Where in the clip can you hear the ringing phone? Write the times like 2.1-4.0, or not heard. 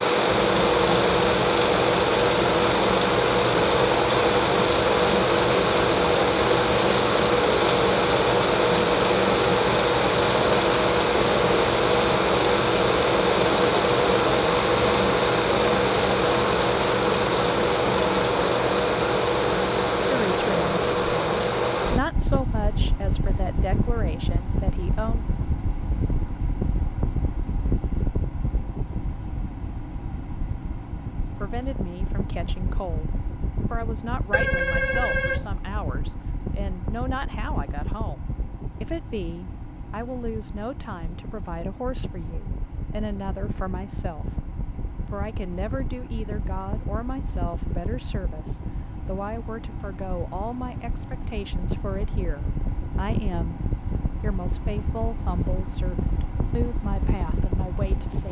34.3-35.5.